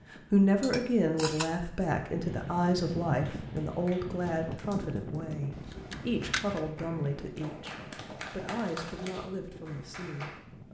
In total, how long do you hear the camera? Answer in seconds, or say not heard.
2 s.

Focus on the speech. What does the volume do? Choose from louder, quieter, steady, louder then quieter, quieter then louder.
quieter.